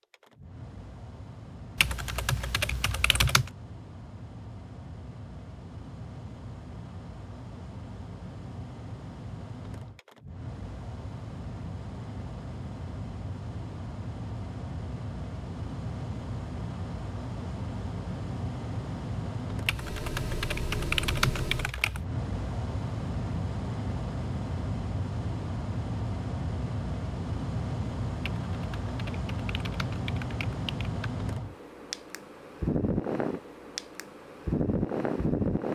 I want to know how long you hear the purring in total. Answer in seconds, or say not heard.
not heard.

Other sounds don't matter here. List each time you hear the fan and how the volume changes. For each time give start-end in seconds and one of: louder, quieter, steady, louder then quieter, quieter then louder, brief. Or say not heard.
0.0-35.7 louder.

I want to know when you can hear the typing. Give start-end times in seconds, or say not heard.
1.8-3.5, 19.6-22.1, 28.2-31.1.